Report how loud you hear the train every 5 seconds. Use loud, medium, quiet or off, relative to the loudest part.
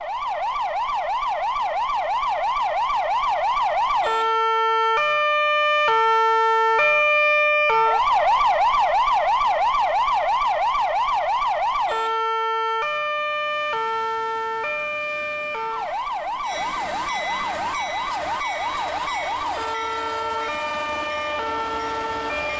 off, off, quiet, loud, loud.